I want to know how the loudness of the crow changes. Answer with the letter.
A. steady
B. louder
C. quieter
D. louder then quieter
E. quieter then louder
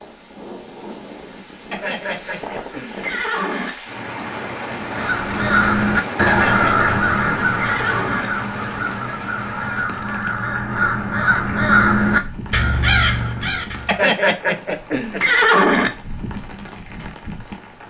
E.